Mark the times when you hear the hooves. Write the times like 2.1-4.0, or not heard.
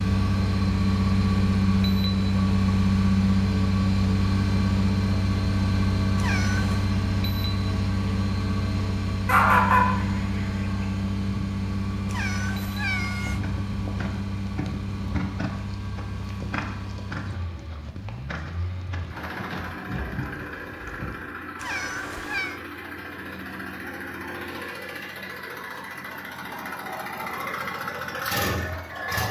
13.2-21.2.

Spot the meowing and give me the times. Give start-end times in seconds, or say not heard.
6.2-7.0, 12.1-13.4, 21.6-22.6.